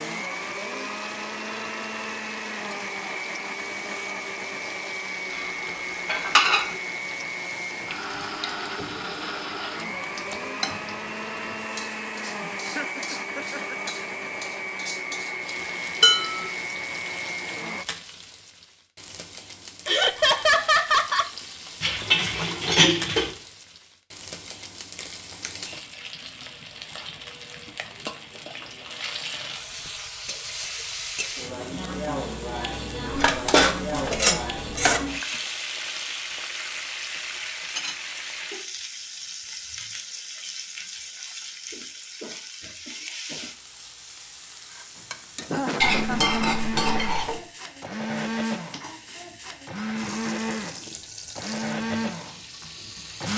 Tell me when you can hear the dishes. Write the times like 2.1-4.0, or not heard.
5.7-6.7, 16.0-16.5, 21.8-23.4, 33.1-35.0, 45.8-47.4.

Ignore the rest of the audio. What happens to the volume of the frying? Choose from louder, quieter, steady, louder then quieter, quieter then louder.
louder then quieter.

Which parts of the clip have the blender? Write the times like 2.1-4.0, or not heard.
0.0-17.9, 45.0-53.3.